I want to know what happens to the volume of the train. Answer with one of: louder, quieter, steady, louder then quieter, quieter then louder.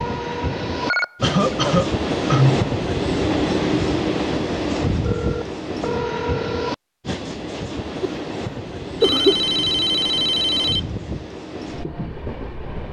quieter.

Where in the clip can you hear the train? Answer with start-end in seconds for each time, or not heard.
0.0-12.8.